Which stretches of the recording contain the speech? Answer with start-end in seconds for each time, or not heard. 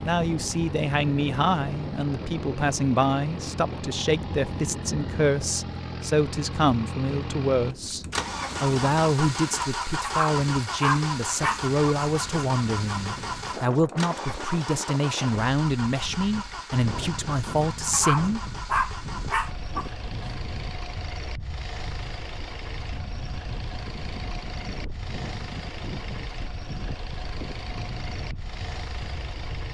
0.1-18.4.